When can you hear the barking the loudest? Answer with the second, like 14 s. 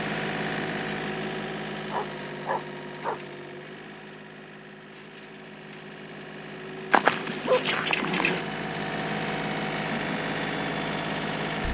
7 s.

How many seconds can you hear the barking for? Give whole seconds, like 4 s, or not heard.
3 s.